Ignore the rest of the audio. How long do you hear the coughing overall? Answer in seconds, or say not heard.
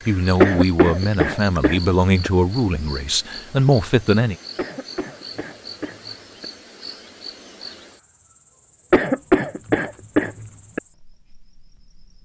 6 s.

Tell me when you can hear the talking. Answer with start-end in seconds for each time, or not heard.
0.1-4.3.